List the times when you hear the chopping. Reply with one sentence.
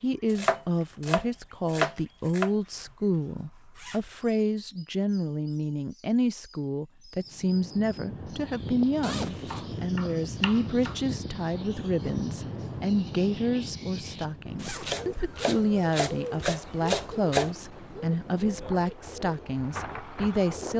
You can hear the chopping from 0.3 to 2.5 s, from 9.5 to 10.9 s and from 14.8 to 17.6 s.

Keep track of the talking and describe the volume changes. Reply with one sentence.
The loudness of the talking stays about the same.